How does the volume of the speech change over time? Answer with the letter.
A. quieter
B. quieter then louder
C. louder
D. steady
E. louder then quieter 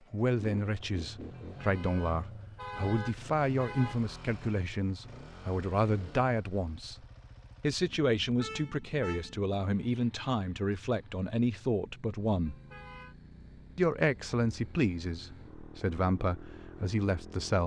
D.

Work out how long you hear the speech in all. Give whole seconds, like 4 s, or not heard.
16 s.